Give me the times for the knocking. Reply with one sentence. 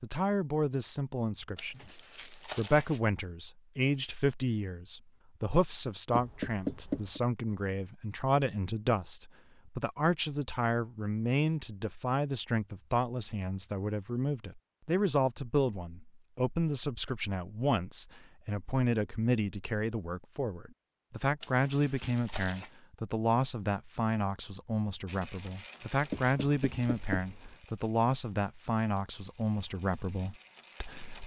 You can hear the knocking from 6.1 to 7.2 s and from 26.1 to 27.6 s.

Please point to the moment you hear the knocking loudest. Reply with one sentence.
The loudest moment of the knocking is at 7 seconds.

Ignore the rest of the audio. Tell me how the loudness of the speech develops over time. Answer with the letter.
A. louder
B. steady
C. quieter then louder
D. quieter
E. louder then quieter
B.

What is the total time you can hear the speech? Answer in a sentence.
The speech can be heard for 31 seconds in total.